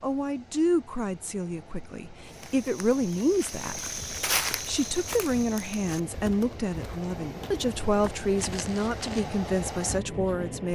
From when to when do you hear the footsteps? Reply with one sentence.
The footsteps can be heard from 2.2 to 9.4 s.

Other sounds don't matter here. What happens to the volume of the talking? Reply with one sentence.
The volume of the talking stays about the same.